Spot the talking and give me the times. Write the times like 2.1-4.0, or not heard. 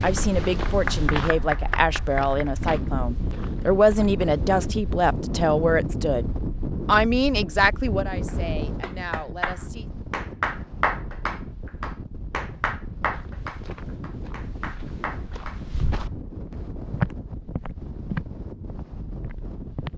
0.0-6.2, 6.8-9.9.